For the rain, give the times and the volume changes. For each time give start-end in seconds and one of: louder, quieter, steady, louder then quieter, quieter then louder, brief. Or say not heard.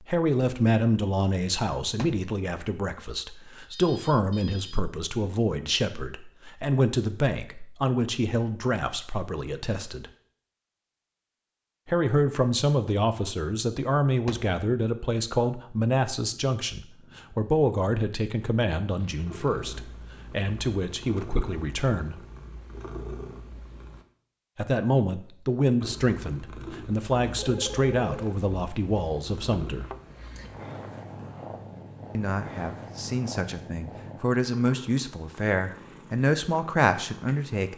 not heard.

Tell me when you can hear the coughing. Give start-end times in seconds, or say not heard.
not heard.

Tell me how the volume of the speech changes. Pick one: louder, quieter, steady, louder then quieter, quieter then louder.
steady.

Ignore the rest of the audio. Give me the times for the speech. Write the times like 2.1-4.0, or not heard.
0.0-10.1, 11.8-22.2, 24.6-29.9, 32.1-37.7.